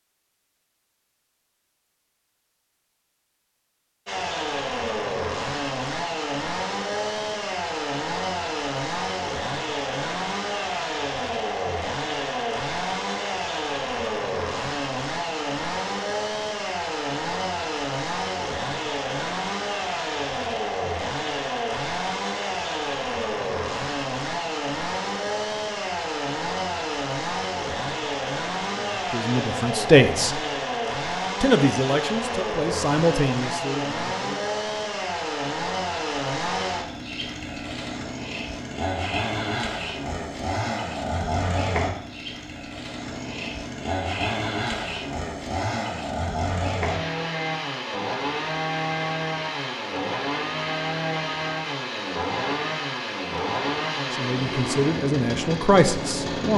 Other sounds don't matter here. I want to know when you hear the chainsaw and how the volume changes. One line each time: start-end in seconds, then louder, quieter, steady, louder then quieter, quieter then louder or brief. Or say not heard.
4.0-56.5 steady.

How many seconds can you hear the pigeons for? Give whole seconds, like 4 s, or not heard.
not heard.